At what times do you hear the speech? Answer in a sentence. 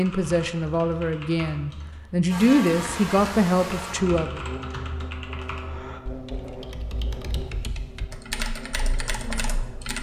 The speech can be heard from 0.0 to 4.4 s.